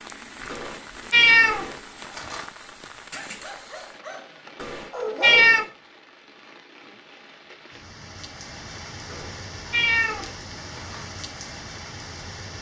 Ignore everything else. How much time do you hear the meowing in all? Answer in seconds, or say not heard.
5 s.